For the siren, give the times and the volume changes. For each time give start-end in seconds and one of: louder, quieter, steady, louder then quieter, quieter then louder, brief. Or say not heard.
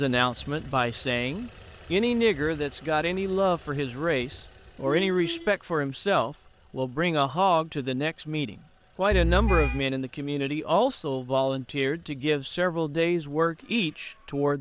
not heard.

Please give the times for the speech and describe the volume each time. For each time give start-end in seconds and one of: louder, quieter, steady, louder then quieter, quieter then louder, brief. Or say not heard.
0.0-14.5 steady.